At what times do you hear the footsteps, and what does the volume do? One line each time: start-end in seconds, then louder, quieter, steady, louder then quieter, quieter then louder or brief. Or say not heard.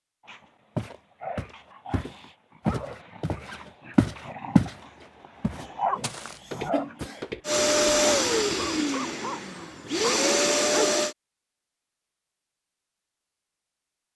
0.8-8.8 louder then quieter.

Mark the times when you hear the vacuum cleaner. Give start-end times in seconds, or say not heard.
7.5-11.2.